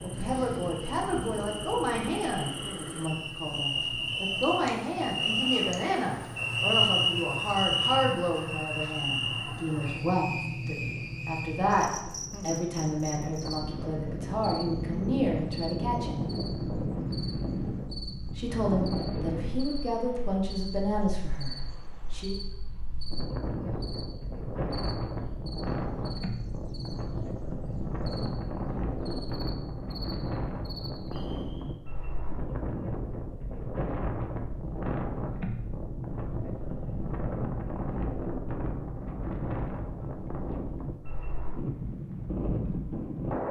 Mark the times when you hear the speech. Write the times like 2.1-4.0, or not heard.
0.0-16.2, 18.2-22.4.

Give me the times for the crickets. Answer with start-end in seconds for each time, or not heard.
0.0-31.8.